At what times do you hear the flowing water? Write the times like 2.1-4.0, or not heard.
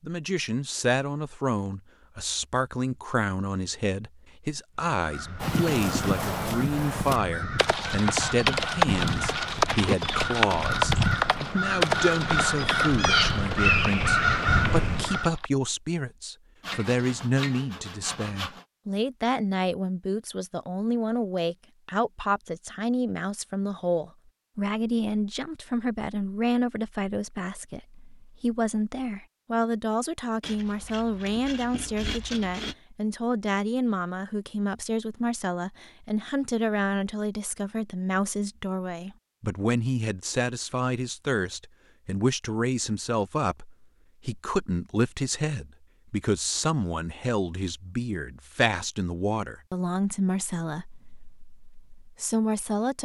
not heard.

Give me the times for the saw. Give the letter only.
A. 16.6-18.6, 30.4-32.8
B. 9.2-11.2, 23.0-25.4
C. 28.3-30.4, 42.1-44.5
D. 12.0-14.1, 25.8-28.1
A.